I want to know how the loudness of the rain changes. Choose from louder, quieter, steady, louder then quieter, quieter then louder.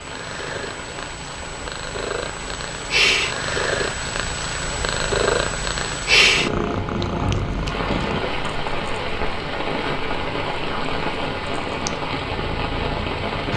louder.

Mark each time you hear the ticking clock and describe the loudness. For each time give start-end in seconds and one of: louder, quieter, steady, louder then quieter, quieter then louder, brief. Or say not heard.
not heard.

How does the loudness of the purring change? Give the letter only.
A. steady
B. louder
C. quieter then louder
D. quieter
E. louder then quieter
E.